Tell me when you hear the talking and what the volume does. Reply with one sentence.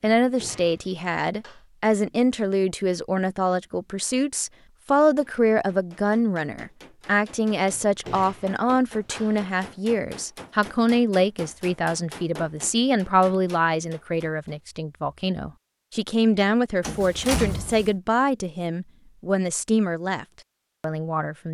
The talking can be heard from 0.0 to 21.4 s, at a steady volume.